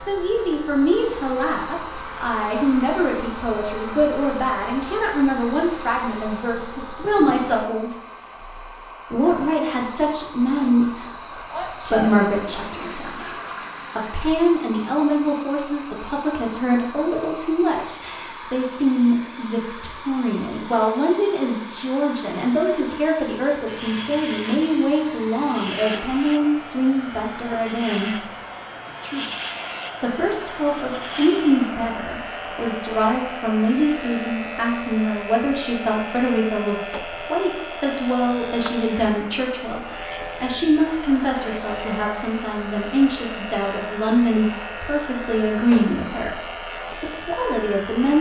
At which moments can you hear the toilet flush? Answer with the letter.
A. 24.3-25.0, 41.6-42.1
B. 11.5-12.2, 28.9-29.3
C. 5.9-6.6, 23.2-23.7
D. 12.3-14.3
D.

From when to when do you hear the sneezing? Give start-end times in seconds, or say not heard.
11.5-12.2, 28.9-29.3.